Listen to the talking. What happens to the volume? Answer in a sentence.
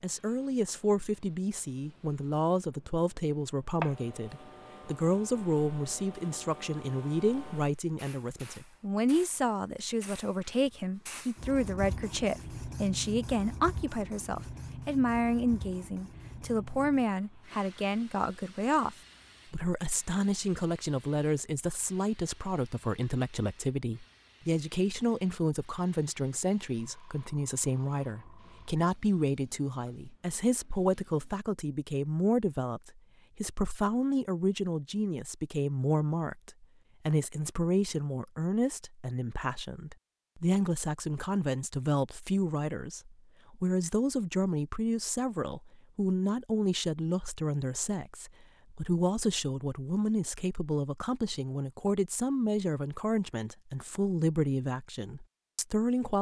The loudness of the talking stays about the same.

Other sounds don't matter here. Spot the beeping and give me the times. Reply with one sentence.
The beeping can't be heard in this clip.